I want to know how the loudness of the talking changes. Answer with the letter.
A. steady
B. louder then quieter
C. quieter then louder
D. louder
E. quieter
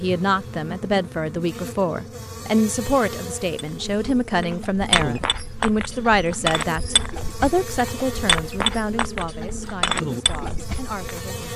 E.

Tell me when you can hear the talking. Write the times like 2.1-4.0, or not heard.
0.0-11.5.